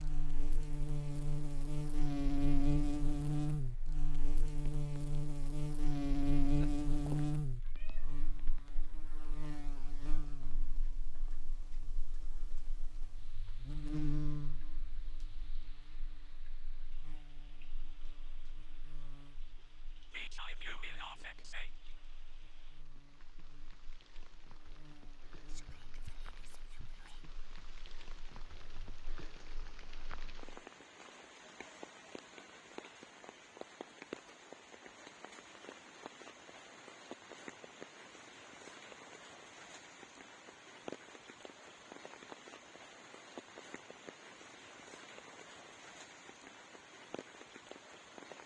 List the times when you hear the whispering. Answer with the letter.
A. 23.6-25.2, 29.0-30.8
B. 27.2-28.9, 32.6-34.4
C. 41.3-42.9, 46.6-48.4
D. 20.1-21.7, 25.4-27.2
D.